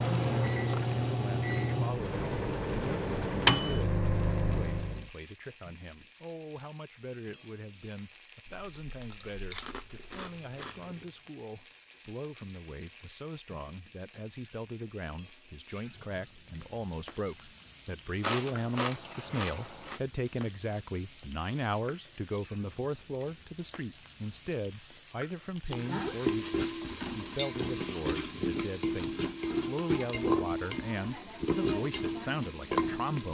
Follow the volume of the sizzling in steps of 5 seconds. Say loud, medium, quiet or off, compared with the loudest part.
quiet, quiet, quiet, quiet, quiet, loud, loud.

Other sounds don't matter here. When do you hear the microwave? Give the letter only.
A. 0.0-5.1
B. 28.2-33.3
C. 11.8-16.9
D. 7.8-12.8
A.